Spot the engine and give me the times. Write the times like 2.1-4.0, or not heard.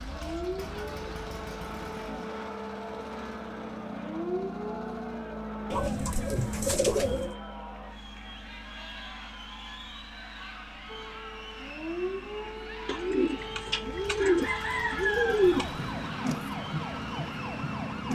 0.0-18.1.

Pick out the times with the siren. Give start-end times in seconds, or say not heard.
0.0-5.8, 10.8-18.1.